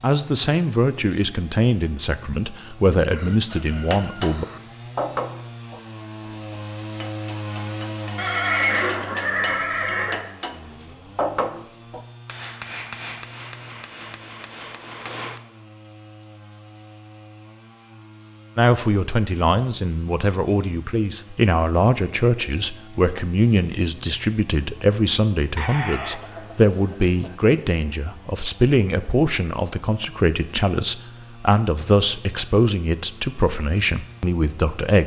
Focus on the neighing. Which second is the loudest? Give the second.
9 s.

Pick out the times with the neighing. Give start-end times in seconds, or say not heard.
8.2-10.2.